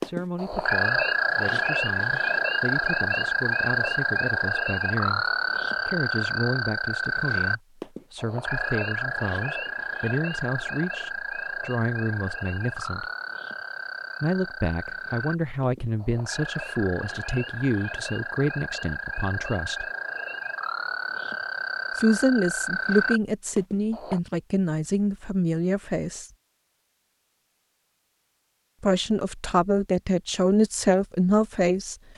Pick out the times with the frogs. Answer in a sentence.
The frogs can be heard from 0.0 to 24.2 s.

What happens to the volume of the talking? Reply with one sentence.
The loudness of the talking goes up.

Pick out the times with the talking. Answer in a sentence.
The talking can be heard from 0.0 to 5.2 s, from 5.8 to 13.1 s, from 14.2 to 19.9 s, from 21.9 to 26.3 s and from 28.8 to 31.9 s.